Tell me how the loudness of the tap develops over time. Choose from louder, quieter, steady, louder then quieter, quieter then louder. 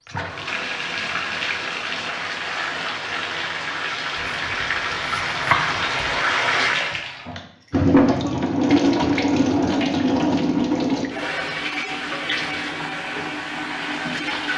louder then quieter.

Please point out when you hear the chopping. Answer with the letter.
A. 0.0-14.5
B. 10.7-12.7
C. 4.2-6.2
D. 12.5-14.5
C.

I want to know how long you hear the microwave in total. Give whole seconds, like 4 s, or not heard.
not heard.